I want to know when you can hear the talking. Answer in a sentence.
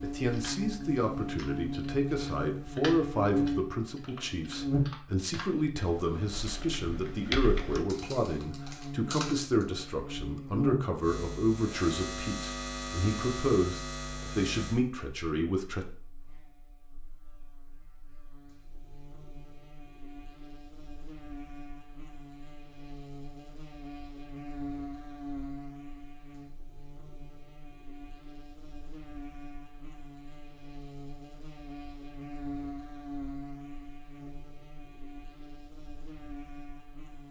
The talking can be heard from 0.0 to 15.9 s.